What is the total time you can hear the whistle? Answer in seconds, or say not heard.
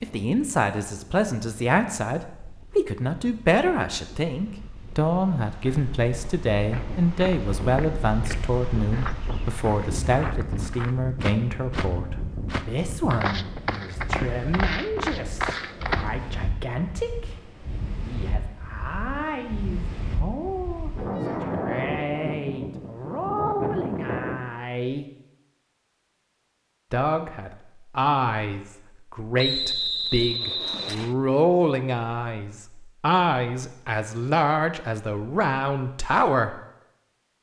2 s.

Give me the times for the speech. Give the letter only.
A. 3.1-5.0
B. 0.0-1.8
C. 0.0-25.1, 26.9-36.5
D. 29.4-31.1
C.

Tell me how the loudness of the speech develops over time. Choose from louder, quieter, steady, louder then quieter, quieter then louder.
quieter then louder.